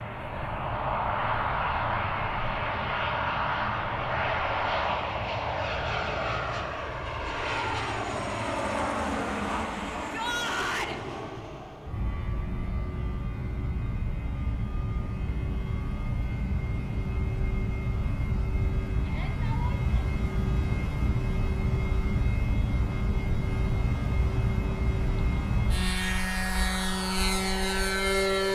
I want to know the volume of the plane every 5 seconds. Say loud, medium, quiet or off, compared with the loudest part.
loud, loud, medium, medium, loud, loud.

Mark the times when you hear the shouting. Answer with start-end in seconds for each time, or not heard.
9.9-10.9, 19.0-19.9.